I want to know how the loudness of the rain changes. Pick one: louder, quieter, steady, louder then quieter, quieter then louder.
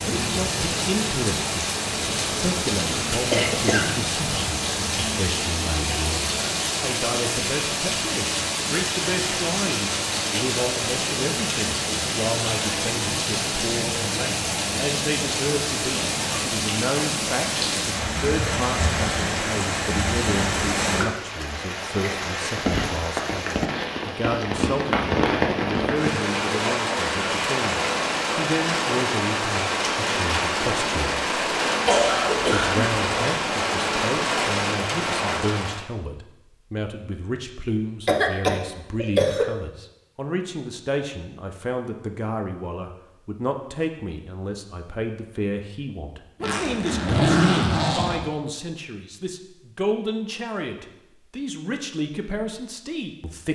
steady.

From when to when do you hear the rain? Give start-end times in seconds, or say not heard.
0.0-35.9.